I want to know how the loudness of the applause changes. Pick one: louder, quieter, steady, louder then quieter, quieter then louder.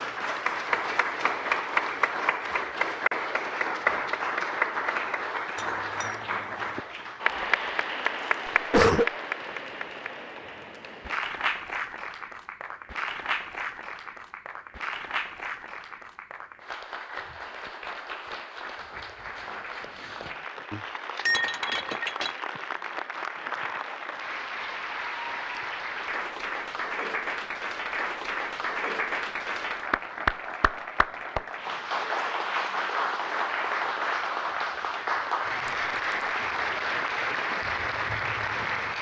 quieter then louder.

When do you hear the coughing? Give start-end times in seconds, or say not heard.
8.7-9.1.